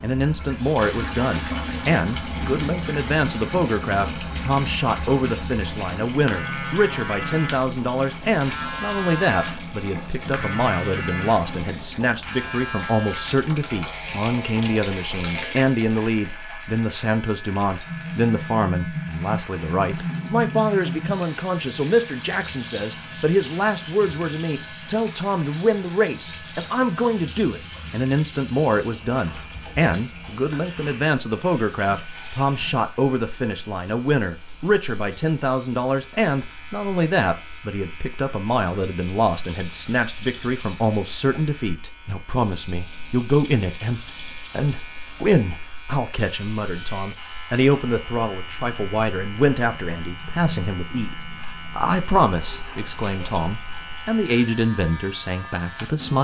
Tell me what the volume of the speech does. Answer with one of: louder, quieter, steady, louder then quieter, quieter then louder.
steady.